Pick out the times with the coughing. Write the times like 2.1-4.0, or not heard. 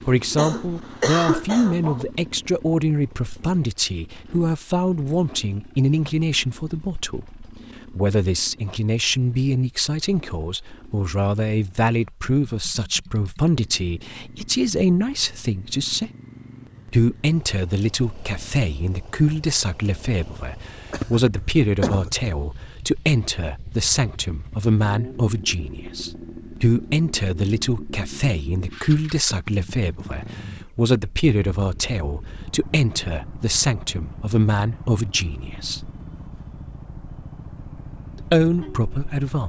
0.3-2.0, 20.9-22.3.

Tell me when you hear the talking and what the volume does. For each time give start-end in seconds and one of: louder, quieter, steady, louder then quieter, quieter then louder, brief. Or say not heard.
0.1-16.1 steady
16.9-35.9 steady
38.2-39.4 brief.